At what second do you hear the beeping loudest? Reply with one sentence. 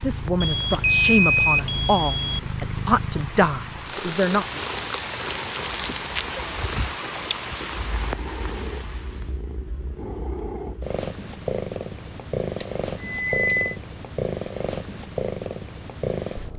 The volume of the beeping peaks at 1 second.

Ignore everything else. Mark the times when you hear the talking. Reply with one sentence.
The talking can be heard from 0.0 to 4.6 s.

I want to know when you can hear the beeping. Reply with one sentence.
The beeping can be heard from 0.4 to 2.4 s and from 12.6 to 13.8 s.